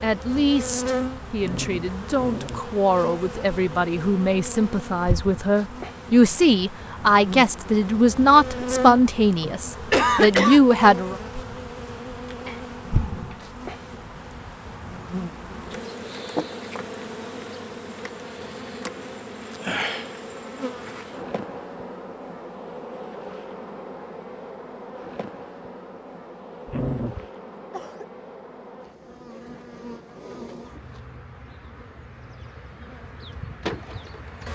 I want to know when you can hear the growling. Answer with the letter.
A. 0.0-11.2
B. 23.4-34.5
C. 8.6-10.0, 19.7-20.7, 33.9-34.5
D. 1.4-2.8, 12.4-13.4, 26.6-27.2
D.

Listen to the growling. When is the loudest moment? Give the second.
27 s.